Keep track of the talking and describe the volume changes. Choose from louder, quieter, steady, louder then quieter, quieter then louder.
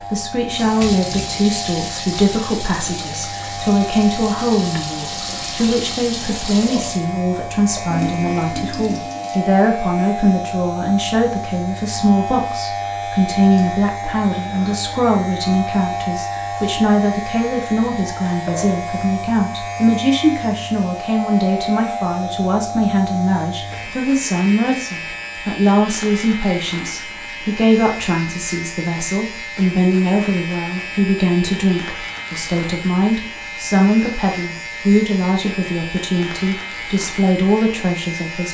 steady.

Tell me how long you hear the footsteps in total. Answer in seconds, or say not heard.
not heard.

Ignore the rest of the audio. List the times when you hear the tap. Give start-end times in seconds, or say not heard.
0.0-9.5.